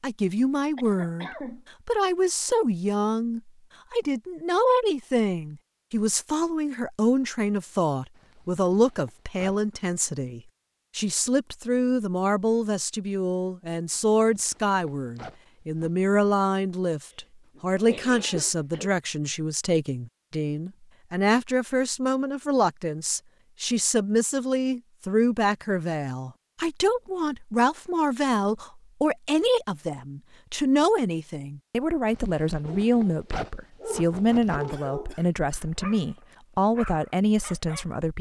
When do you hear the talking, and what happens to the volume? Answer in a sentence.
The talking can be heard from 0.0 to 38.1 s, at a steady volume.